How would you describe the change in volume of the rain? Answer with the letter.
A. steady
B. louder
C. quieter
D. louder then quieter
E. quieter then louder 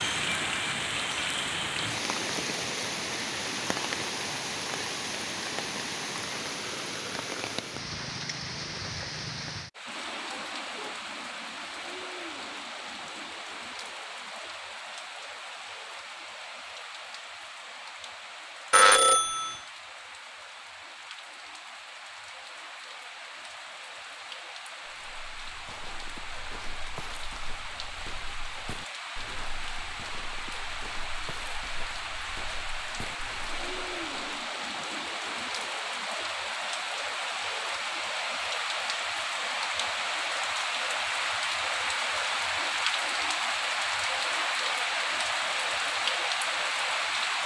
E.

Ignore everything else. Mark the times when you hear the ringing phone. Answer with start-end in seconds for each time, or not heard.
18.7-19.6.